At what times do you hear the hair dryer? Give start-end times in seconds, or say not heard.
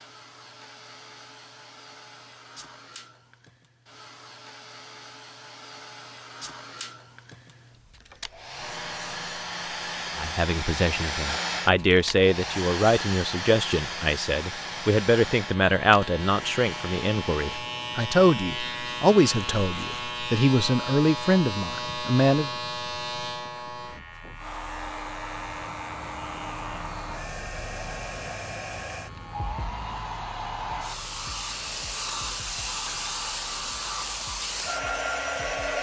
0.0-17.6, 24.4-35.7.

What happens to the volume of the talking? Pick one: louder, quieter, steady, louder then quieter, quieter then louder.
steady.